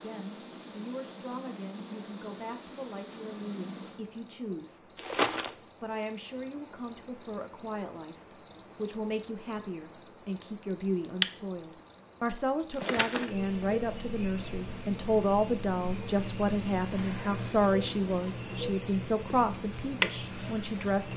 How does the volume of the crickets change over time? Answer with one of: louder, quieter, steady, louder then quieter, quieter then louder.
steady.